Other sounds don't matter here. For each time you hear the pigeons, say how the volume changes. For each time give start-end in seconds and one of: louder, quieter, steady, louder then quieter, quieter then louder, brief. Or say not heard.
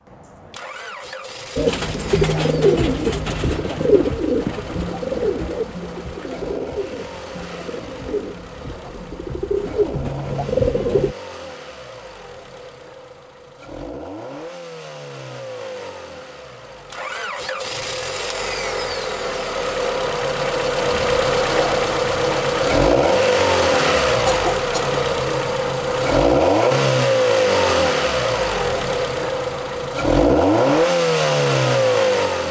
1.6-11.2 quieter then louder.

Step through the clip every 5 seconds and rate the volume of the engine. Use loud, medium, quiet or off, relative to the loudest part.
quiet, quiet, quiet, medium, loud, loud, loud.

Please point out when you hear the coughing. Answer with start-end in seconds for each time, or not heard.
24.2-25.0.